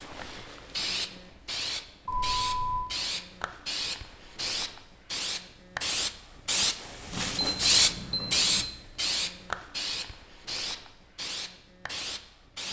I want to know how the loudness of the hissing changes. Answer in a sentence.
The volume of the hissing goes up, then down.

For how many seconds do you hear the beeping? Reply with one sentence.
The beeping can be heard for 2 seconds in total.